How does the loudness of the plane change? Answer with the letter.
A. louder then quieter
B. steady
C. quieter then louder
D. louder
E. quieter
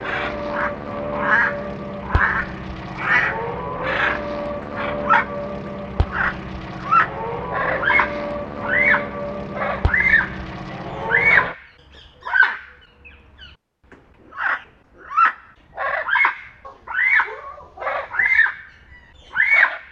B.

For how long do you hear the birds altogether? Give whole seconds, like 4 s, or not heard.
16 s.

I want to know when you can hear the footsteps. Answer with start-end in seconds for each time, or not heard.
not heard.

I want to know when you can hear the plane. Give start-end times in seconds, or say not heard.
0.0-11.6.